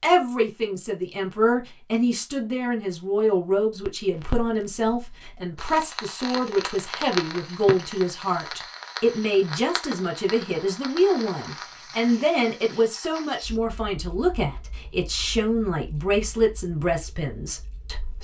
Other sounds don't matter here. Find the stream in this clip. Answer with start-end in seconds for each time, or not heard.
not heard.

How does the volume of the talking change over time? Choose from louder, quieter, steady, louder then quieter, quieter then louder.
steady.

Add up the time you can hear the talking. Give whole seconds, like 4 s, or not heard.
18 s.